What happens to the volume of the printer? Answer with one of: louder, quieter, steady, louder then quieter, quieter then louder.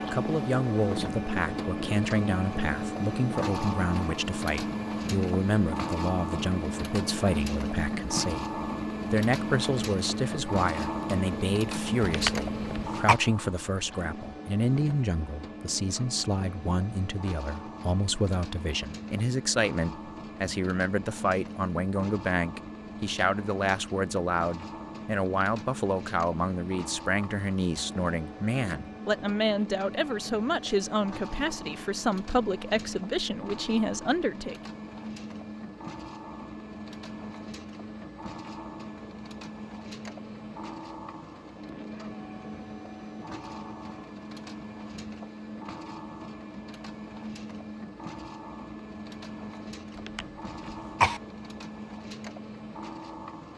quieter.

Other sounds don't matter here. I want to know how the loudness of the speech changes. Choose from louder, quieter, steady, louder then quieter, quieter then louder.
steady.